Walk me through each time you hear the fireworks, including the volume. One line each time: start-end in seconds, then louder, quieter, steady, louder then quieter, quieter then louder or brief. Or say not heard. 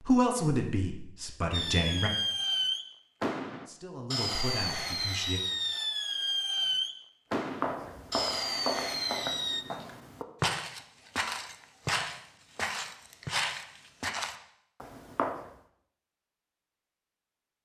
1.5-9.7 steady.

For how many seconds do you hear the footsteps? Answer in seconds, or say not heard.
8 s.